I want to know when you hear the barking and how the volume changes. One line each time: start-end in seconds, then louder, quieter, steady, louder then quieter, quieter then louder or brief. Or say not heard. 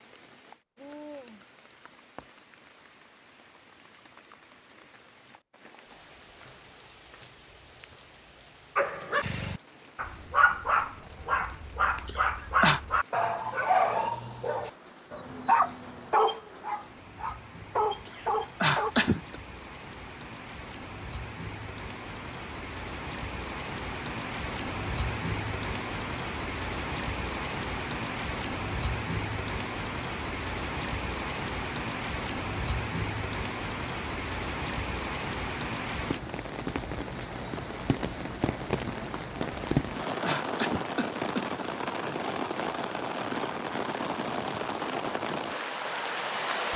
8.8-18.9 steady.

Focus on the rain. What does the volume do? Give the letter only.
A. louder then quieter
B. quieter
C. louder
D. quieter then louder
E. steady
C.